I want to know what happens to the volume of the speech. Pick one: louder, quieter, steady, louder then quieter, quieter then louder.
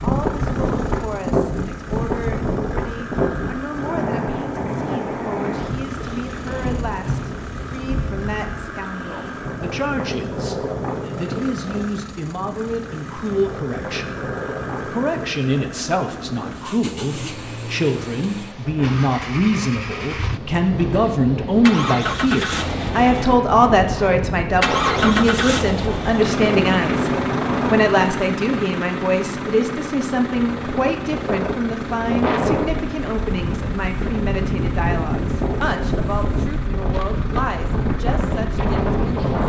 louder then quieter.